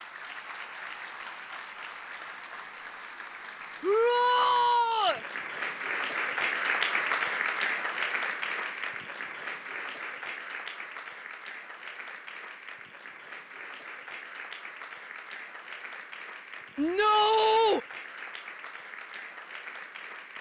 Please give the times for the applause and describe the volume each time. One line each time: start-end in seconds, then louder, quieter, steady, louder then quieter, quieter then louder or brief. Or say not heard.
0.0-20.3 louder then quieter.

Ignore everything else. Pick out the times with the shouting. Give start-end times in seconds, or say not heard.
3.8-5.2, 16.8-17.8.